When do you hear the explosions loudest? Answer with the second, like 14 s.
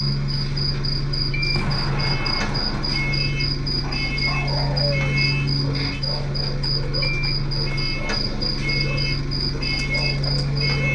2 s.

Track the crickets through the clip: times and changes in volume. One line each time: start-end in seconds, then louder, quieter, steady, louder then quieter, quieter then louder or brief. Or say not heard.
0.0-10.8 steady.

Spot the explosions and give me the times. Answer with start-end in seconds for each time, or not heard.
1.5-3.2.